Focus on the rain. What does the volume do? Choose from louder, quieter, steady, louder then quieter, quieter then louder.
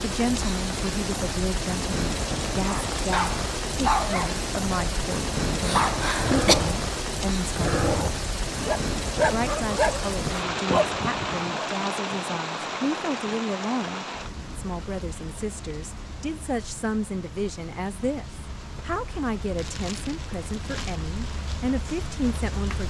quieter.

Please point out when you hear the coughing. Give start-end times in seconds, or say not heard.
5.6-6.6.